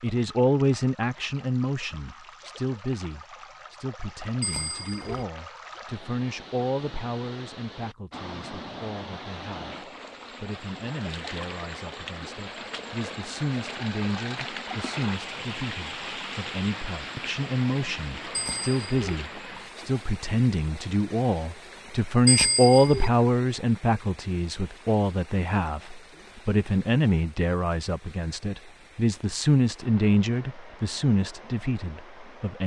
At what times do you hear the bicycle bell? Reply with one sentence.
The bicycle bell can be heard from 4.4 to 5.2 s, from 18.3 to 19.2 s and from 22.2 to 23.1 s.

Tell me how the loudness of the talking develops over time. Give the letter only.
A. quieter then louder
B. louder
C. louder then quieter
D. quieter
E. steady
A.